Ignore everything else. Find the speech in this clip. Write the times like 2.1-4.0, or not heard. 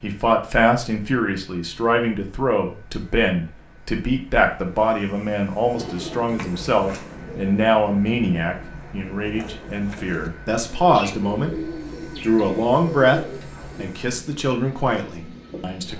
0.0-11.6, 12.2-15.9.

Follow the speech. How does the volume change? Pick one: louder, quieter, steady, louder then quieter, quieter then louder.
steady.